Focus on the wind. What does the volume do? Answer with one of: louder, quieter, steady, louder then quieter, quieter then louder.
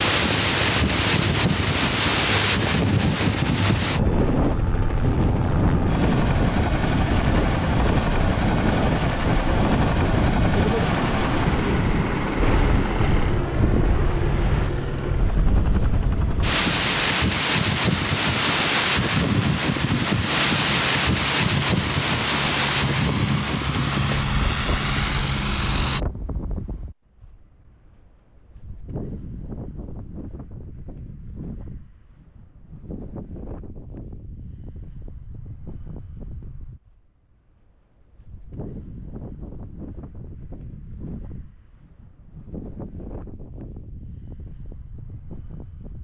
quieter.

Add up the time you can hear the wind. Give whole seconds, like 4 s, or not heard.
46 s.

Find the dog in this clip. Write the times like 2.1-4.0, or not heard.
not heard.